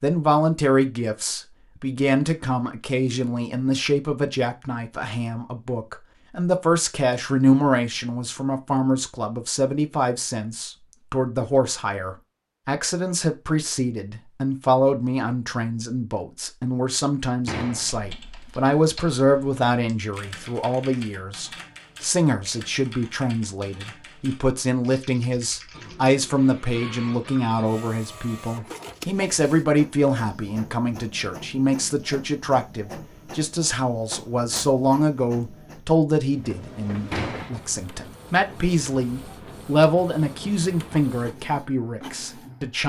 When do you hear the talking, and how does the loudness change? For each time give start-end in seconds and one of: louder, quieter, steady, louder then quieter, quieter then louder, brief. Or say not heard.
0.0-42.8 steady.